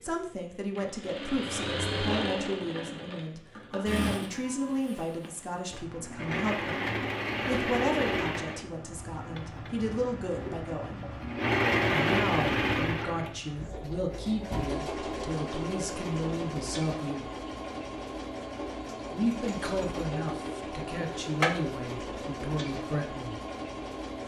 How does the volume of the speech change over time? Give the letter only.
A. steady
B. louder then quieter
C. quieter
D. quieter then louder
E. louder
A.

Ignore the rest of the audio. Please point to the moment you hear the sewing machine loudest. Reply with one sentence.
The volume of the sewing machine peaks at 12 seconds.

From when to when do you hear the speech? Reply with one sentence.
The speech can be heard from 0.0 to 11.1 s, from 11.9 to 17.2 s and from 19.1 to 23.4 s.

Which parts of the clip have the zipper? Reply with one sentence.
The zipper can't be heard in this clip.